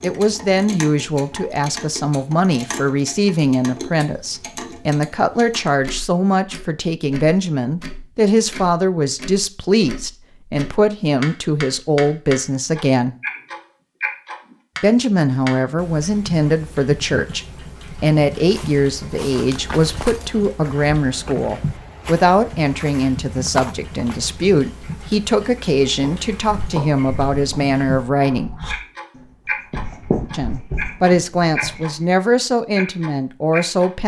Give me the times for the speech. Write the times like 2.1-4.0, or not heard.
0.0-13.2, 14.8-28.5, 30.3-34.0.